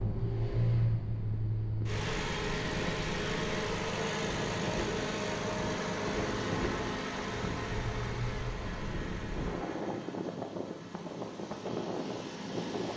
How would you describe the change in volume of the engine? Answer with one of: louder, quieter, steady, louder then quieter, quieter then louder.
quieter.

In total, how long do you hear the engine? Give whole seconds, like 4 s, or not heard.
13 s.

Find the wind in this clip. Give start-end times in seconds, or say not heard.
0.0-12.9.